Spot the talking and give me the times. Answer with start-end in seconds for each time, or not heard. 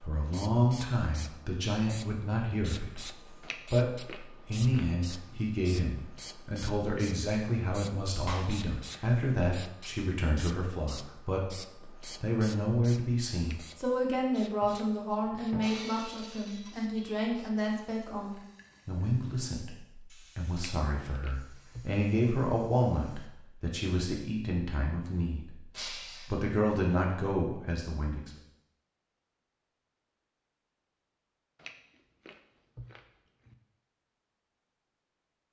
0.0-3.0, 3.7-11.6, 12.2-19.8, 20.4-25.5, 26.3-28.3.